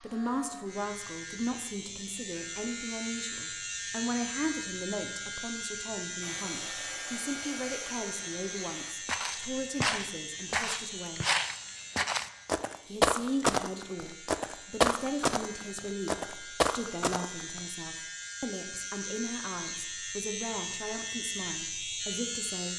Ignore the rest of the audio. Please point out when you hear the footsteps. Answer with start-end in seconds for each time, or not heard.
9.1-17.6.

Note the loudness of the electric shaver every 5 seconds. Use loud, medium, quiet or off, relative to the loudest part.
loud, loud, medium, medium, loud.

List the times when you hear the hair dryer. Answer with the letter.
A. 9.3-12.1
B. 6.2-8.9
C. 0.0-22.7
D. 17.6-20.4
B.